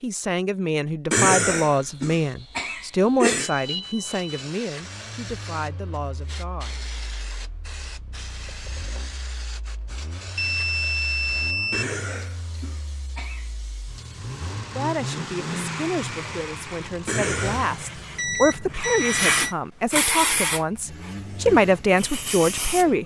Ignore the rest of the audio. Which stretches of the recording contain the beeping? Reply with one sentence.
The beeping can be heard from 3.4 to 4.5 s, from 10.3 to 11.8 s and from 17.7 to 19.6 s.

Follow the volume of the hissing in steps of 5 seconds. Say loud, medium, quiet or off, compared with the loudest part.
quiet, quiet, quiet, loud, loud.